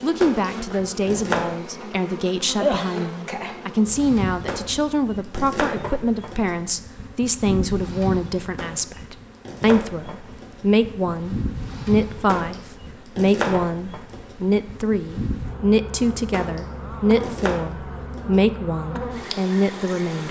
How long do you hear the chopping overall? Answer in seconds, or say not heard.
10 s.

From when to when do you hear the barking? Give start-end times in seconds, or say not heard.
not heard.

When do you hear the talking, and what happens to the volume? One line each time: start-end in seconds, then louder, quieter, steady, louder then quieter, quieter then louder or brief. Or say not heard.
0.0-20.2 steady.